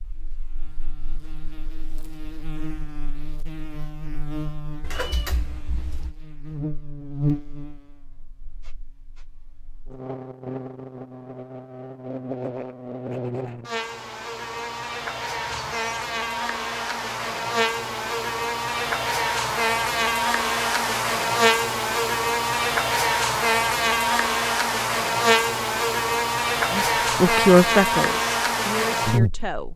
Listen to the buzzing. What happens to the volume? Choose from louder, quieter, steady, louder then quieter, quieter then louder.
louder.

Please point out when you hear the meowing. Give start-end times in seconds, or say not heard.
4.8-6.2.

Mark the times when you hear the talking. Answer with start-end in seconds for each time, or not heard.
26.7-29.7.